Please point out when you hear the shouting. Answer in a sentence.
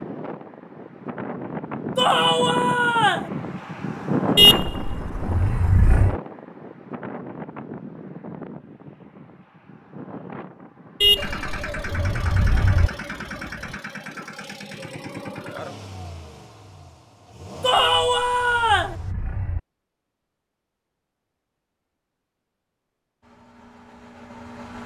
The shouting can be heard from 1.9 to 3.3 s and from 17.6 to 18.9 s.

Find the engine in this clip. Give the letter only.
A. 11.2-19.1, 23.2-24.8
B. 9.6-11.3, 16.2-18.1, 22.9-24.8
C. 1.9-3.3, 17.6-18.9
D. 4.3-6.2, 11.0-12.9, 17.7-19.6
A.